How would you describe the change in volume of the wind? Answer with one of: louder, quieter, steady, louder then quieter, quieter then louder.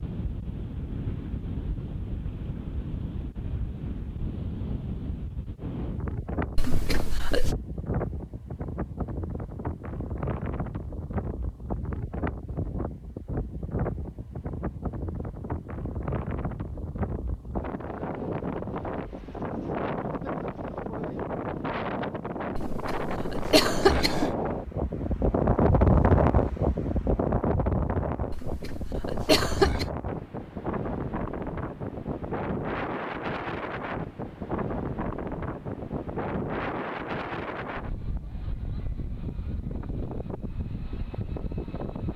louder then quieter.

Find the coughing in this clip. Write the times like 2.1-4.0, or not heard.
6.5-7.5, 22.6-24.3, 28.3-29.9.